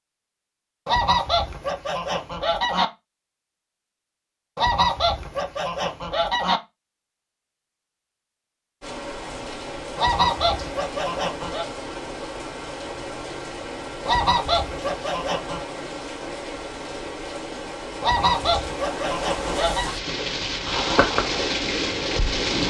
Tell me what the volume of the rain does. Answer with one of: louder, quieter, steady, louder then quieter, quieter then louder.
louder.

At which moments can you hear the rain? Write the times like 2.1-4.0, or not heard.
8.8-22.6.